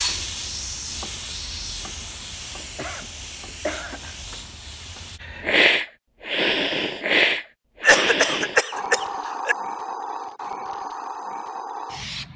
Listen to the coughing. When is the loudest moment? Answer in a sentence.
The loudest moment of the coughing is at 8 seconds.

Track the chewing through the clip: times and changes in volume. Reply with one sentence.
The chewing can't be heard in this clip.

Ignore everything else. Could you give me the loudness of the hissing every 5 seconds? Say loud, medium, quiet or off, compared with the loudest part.
medium, loud, medium.